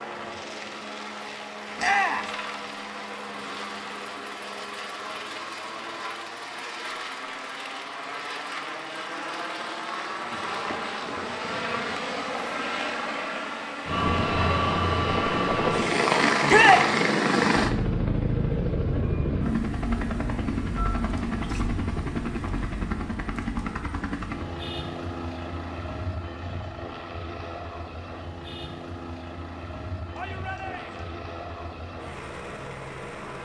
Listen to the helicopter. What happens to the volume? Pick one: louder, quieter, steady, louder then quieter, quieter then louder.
louder then quieter.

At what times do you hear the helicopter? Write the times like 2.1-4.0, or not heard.
0.0-33.4.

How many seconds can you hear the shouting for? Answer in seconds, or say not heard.
2 s.